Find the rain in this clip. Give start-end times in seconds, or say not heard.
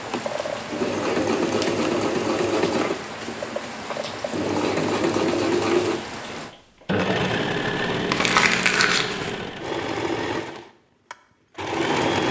0.0-6.5.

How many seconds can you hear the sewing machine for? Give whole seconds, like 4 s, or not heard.
12 s.